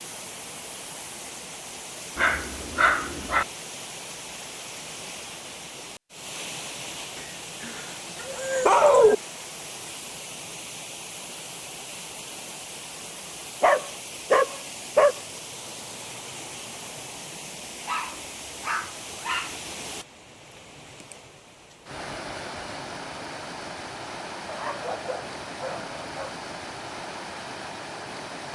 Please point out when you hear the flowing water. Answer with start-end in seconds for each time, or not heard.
0.0-28.5.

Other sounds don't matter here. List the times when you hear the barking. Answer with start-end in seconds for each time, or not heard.
2.1-3.5, 7.2-9.2, 13.6-15.2, 17.9-19.6, 24.4-26.4.